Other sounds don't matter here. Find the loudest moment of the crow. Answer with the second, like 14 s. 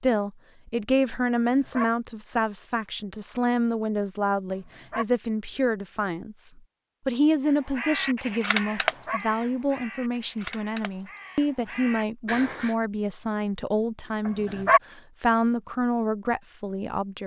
9 s.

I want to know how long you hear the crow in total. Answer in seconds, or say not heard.
5 s.